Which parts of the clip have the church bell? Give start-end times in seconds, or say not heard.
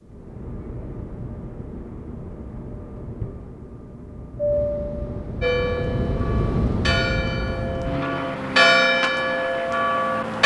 5.4-10.4.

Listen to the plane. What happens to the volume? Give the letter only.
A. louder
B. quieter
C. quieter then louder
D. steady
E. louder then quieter
E.